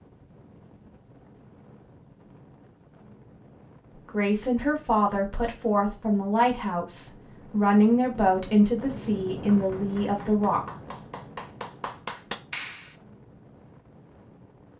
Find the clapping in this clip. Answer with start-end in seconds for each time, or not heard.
9.5-12.9.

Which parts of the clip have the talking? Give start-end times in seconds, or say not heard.
4.0-10.6.